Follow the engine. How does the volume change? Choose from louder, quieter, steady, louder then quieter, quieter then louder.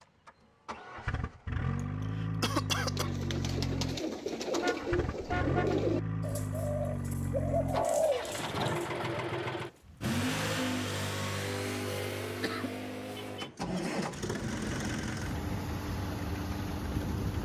steady.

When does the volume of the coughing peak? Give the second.
3 s.